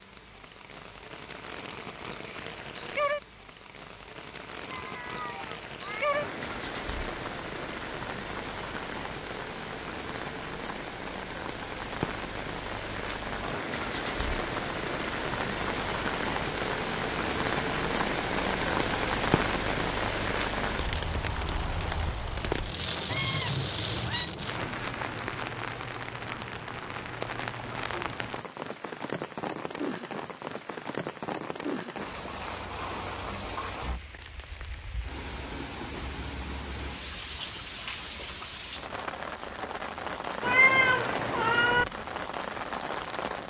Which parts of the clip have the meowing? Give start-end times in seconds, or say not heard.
4.7-6.0, 23.1-24.3, 40.4-41.9.